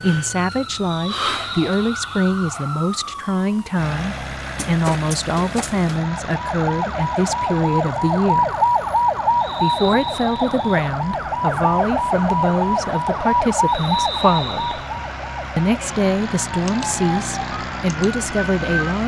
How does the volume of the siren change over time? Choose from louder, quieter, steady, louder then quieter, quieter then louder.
louder then quieter.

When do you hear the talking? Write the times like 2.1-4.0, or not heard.
0.0-8.5, 9.6-14.8, 15.6-19.0.